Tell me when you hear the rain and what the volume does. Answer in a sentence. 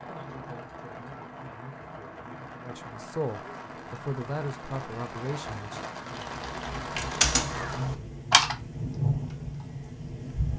The rain can be heard from 0.0 to 10.5 s, getting louder.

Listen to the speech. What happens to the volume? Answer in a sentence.
The loudness of the speech goes up.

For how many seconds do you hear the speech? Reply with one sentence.
You can hear the speech for 6 seconds altogether.